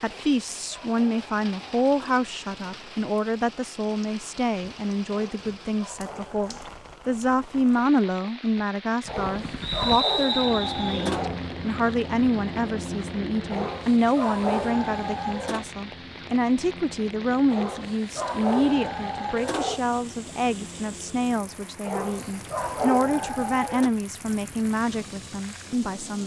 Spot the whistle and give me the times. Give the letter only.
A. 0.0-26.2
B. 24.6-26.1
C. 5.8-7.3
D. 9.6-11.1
D.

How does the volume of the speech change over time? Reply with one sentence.
The volume of the speech stays about the same.